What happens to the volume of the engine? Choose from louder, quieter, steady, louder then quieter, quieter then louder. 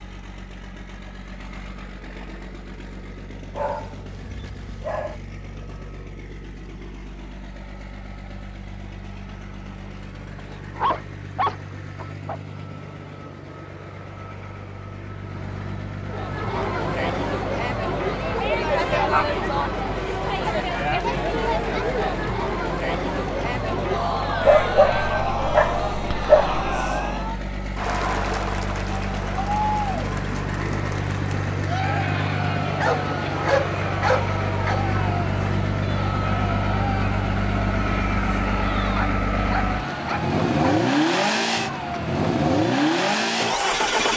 louder.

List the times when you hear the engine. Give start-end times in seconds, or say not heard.
0.0-44.1.